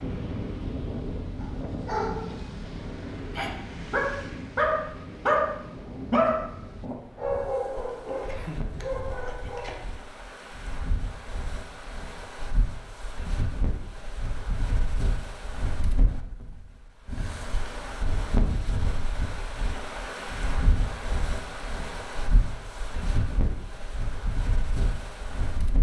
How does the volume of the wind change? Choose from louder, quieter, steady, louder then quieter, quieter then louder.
quieter then louder.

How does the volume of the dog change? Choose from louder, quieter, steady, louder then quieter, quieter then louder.
louder then quieter.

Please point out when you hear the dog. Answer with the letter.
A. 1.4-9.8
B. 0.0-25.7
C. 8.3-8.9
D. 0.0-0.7
A.